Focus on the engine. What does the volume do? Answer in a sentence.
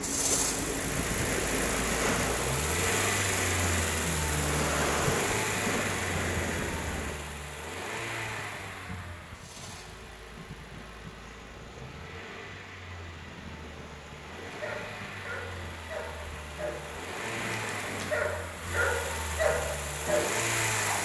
The volume of the engine goes down, then up.